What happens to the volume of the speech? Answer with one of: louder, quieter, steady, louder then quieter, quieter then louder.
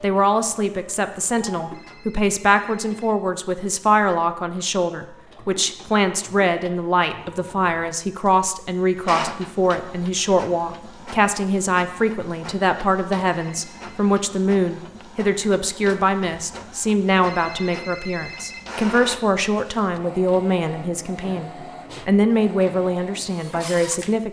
steady.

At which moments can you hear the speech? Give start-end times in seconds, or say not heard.
0.0-24.2.